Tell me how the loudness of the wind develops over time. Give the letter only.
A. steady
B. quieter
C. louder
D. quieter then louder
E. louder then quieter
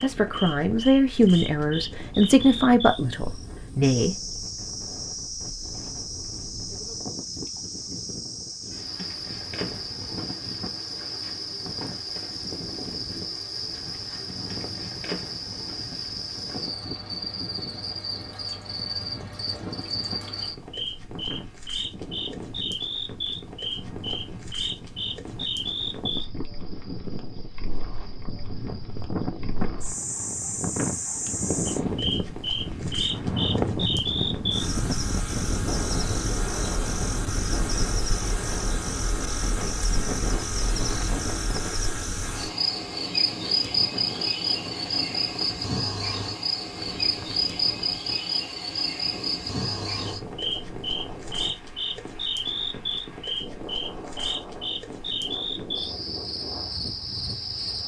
E.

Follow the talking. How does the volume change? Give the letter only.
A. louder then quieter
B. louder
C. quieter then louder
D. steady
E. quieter
E.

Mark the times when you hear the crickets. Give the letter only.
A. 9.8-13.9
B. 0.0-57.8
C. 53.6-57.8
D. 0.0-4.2
B.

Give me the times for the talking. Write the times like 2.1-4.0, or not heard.
0.0-4.2.